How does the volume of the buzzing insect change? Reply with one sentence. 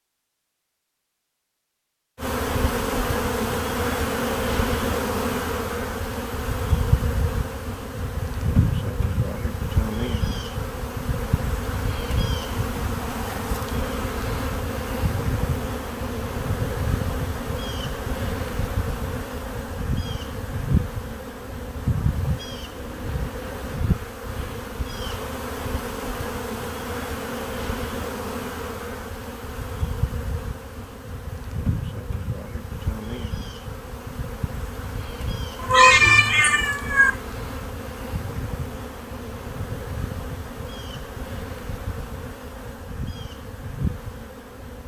The volume of the buzzing insect goes down.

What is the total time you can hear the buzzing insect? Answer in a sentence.
You can hear the buzzing insect for 43 seconds altogether.